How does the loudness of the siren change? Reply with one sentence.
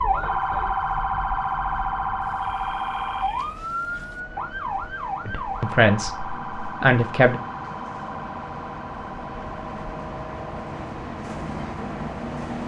The volume of the siren goes down.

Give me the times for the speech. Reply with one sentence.
You can hear the speech from 5.2 to 7.4 s.